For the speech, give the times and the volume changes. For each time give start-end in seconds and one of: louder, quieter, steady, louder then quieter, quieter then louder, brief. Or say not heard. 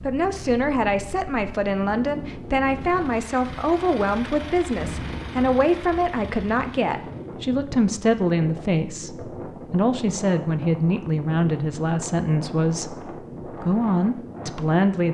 0.0-15.0 steady.